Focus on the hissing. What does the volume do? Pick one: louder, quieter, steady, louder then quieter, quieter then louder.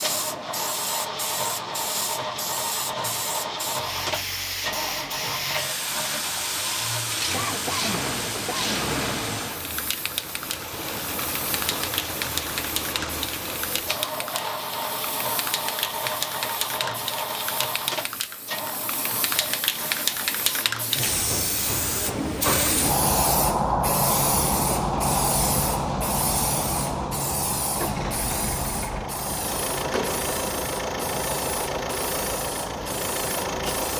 louder then quieter.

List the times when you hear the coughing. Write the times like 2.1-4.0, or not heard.
7.3-8.8.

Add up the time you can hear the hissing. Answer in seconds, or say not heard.
34 s.